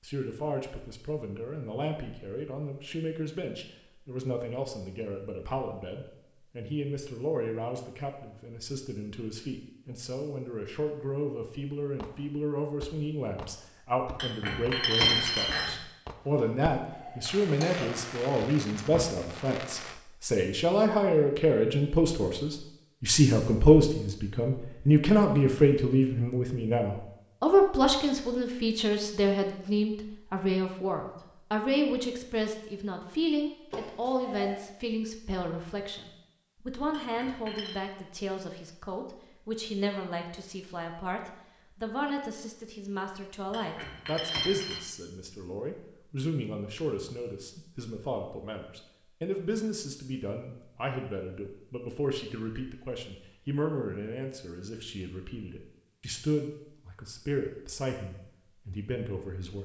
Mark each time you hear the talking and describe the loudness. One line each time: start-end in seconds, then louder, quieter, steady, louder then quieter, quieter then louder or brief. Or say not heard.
0.0-59.6 louder then quieter.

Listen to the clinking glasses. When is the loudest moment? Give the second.
15 s.